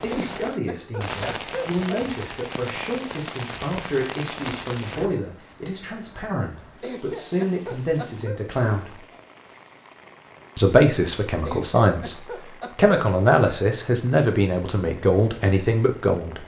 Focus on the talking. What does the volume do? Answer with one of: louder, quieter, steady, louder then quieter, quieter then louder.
louder.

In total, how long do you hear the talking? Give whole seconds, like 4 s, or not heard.
15 s.